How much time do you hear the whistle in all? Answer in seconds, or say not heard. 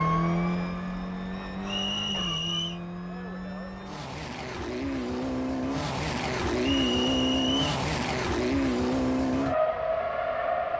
2 s.